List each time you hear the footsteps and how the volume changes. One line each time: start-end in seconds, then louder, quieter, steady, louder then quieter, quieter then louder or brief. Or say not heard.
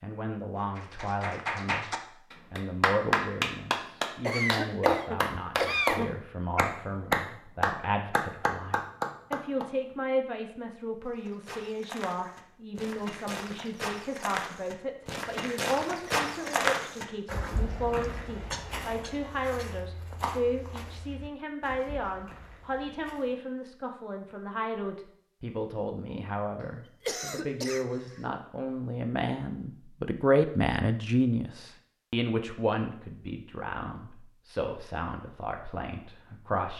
11.1-23.4 louder then quieter.